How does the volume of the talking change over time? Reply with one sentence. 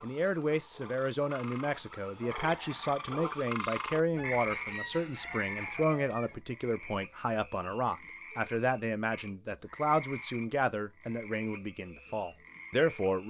The loudness of the talking stays about the same.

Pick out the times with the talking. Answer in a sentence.
The talking can be heard from 0.0 to 13.2 s.